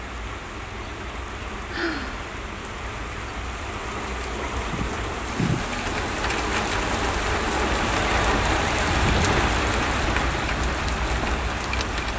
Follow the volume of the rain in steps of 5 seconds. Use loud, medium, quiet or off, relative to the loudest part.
medium, loud, loud.